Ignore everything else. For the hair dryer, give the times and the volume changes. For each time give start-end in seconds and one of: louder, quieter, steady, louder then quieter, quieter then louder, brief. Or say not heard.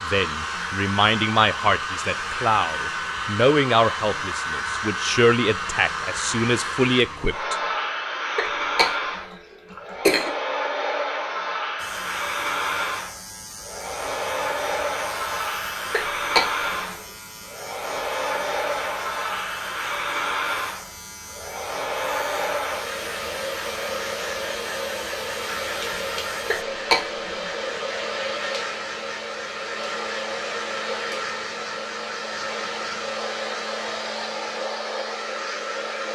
0.0-36.1 steady.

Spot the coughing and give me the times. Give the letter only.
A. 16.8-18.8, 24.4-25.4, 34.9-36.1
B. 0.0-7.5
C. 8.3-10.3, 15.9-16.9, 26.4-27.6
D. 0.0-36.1
C.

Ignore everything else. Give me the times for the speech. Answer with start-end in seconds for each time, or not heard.
0.0-7.5.